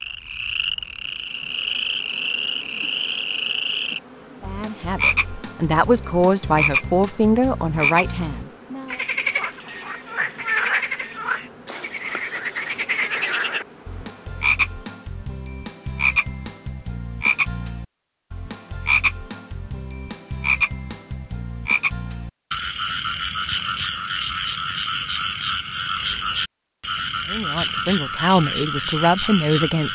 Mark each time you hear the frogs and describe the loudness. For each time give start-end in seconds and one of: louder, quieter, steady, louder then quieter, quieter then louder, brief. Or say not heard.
0.0-29.9 steady.